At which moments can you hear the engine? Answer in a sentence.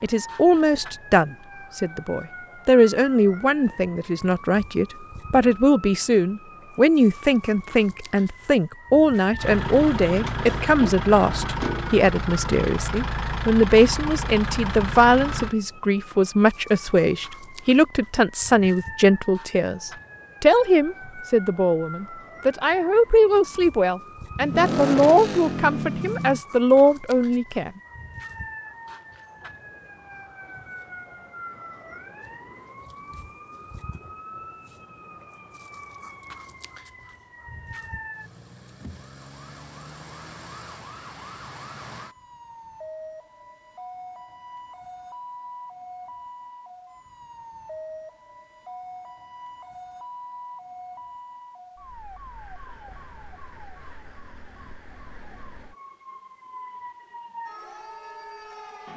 The engine can be heard from 9.3 to 15.6 s and from 24.4 to 26.4 s.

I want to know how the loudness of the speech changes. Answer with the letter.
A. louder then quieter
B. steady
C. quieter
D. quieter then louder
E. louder
B.